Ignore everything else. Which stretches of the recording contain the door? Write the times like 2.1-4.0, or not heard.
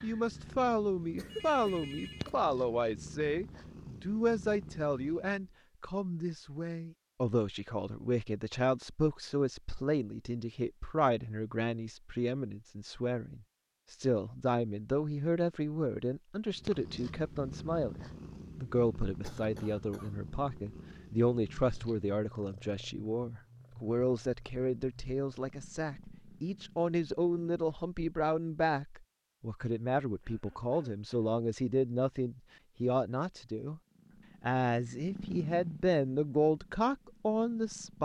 not heard.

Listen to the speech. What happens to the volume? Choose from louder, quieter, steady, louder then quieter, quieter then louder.
steady.